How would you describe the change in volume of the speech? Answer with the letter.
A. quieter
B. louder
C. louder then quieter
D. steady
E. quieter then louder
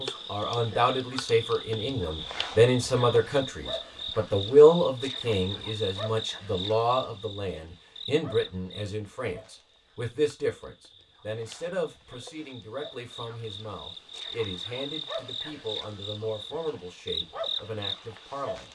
A.